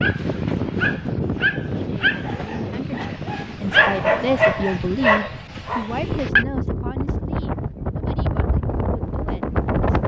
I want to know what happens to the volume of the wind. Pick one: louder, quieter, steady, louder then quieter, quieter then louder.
quieter then louder.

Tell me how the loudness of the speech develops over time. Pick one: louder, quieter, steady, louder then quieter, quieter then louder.
louder then quieter.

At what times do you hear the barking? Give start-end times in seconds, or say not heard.
0.0-6.5.